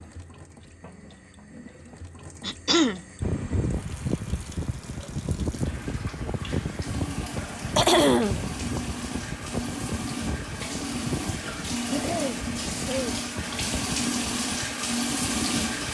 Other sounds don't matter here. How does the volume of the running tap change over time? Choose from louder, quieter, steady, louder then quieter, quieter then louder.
louder.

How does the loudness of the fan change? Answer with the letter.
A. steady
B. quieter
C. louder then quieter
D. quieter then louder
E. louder
B.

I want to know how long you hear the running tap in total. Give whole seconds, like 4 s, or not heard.
16 s.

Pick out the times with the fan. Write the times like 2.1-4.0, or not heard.
3.2-15.8.